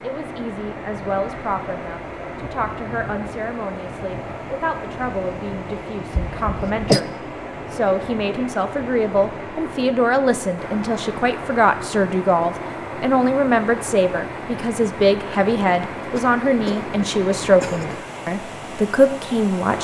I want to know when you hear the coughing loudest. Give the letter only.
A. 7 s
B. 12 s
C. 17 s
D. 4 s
A.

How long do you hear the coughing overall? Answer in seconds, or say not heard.
3 s.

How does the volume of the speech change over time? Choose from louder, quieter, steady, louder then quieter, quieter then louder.
louder.